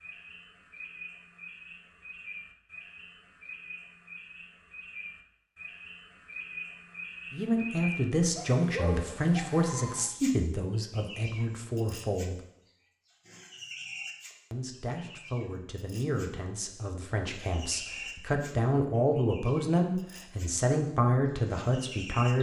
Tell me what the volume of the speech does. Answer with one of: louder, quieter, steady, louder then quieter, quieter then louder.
quieter then louder.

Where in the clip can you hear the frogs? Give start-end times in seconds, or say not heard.
not heard.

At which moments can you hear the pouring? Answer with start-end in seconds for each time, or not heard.
not heard.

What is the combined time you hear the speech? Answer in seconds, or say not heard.
13 s.